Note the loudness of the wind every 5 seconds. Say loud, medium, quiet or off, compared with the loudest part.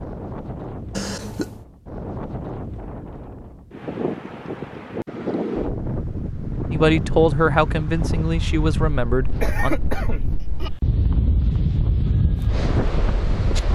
medium, loud, loud.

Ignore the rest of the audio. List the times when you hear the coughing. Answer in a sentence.
You can hear the coughing from 0.9 to 1.6 s and from 9.4 to 10.7 s.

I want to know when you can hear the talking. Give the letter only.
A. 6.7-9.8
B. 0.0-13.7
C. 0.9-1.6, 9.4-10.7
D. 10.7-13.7
A.